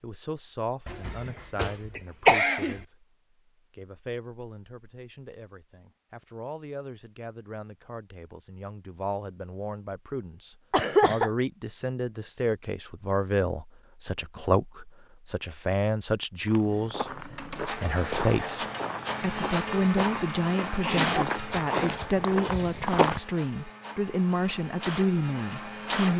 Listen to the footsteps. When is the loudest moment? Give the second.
23 s.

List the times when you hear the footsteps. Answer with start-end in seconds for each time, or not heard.
16.4-23.2.